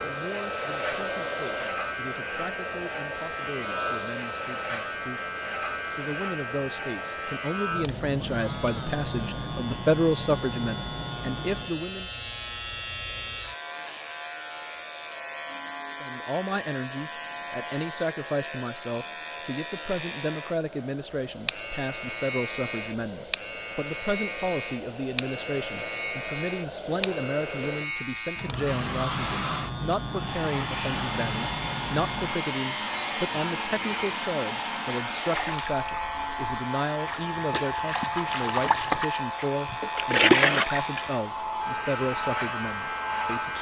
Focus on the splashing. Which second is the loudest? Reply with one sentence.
The volume of the splashing peaks at 40 seconds.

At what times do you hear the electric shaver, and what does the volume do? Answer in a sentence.
The electric shaver can be heard from 0.0 to 43.5 s, at a steady volume.